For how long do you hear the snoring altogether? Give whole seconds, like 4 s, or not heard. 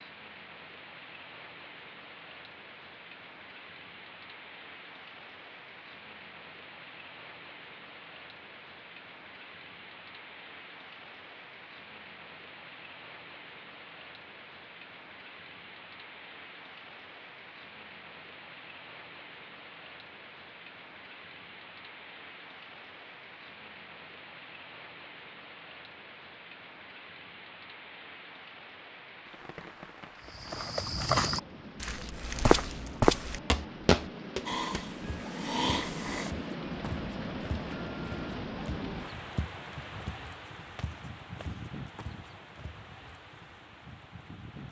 2 s.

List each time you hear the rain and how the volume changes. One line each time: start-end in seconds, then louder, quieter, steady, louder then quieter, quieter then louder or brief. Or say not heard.
0.0-44.6 louder.